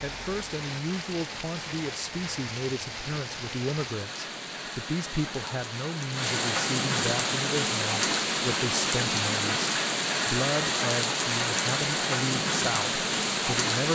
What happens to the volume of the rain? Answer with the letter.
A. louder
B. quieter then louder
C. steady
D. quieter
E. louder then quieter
A.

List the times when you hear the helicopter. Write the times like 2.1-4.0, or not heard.
not heard.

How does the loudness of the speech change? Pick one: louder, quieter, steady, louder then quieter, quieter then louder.
steady.